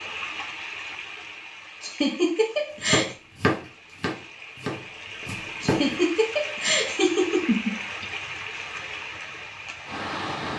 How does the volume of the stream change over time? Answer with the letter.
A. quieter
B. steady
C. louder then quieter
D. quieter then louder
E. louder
D.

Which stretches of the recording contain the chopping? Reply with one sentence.
You can hear the chopping from 2.9 to 6.0 s.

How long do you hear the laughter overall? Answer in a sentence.
The laughter can be heard for 4 seconds in total.